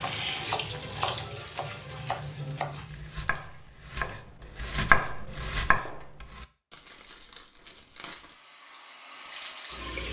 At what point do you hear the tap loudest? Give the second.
1 s.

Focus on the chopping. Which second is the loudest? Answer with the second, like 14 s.
5 s.